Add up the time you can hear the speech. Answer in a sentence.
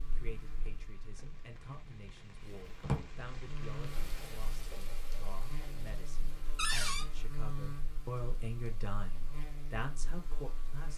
You can hear the speech for 11 seconds altogether.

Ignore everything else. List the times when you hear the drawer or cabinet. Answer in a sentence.
You can hear the drawer or cabinet from 2.4 to 3.0 s and from 6.5 to 7.0 s.